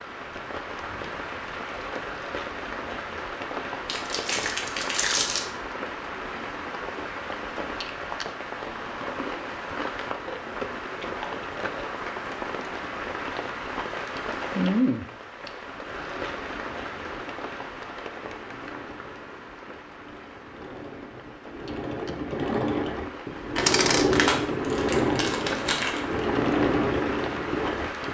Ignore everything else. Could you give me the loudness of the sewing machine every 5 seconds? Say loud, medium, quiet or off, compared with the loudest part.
off, off, off, quiet, loud, loud.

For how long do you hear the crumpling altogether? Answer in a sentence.
You can hear the crumpling for 4 seconds altogether.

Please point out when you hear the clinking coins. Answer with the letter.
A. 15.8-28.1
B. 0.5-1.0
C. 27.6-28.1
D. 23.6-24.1
D.